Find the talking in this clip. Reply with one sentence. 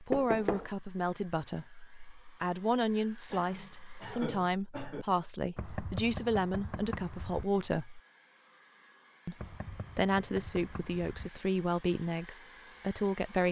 The talking can be heard from 0.0 to 8.0 s and from 9.2 to 13.4 s.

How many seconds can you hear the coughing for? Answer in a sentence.
You can hear the coughing for 2 seconds altogether.